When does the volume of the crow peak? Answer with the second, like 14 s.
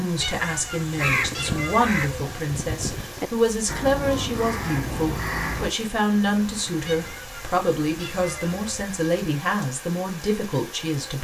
1 s.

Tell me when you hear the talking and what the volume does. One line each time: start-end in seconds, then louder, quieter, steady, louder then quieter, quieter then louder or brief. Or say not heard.
0.0-11.1 steady.